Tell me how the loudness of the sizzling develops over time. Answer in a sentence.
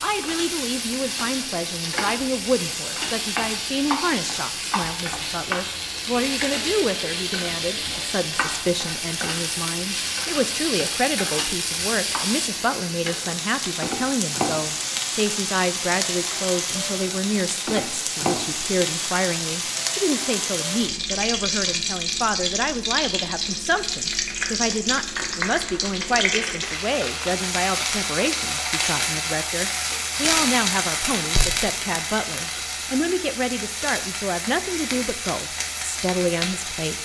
The volume of the sizzling stays about the same.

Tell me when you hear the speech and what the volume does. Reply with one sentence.
You can hear the speech from 0.0 to 37.0 s, at a steady volume.